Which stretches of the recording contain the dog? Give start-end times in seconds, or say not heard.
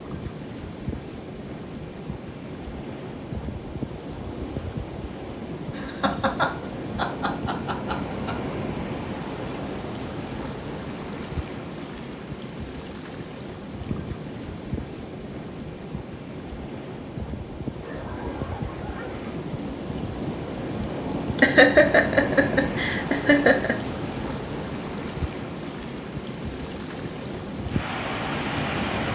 17.8-19.4.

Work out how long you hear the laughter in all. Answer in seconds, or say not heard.
5 s.